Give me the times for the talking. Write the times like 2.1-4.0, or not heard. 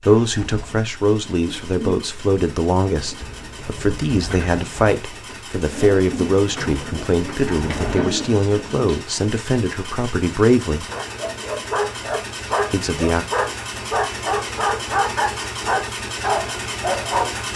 0.1-10.8, 12.7-13.2.